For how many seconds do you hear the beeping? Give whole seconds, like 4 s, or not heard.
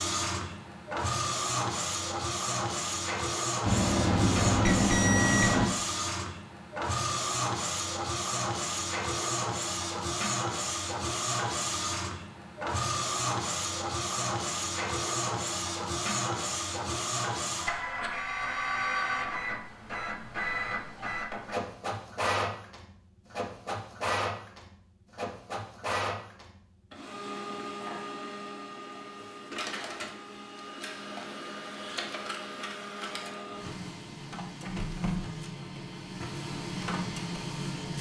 2 s.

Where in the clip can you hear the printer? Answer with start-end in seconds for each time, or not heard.
0.0-37.9.